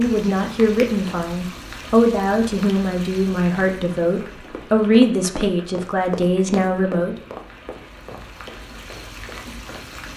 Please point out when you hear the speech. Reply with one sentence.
You can hear the speech from 0.0 to 7.2 s.